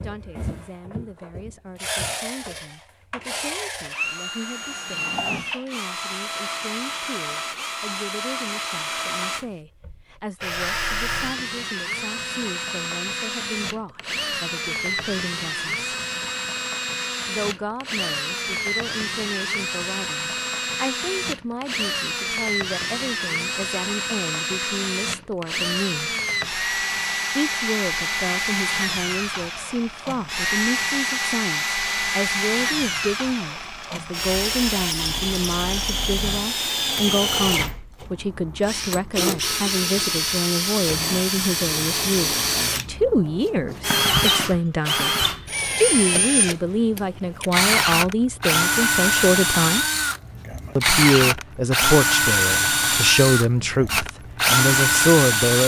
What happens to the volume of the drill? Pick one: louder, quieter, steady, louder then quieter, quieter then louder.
louder.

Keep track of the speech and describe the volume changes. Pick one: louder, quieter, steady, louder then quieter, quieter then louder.
louder.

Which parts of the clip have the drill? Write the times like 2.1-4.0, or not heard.
0.0-55.6.